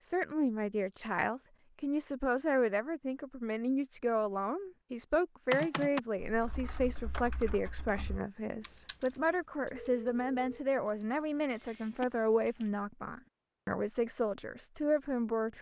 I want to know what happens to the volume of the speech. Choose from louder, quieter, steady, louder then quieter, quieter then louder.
steady.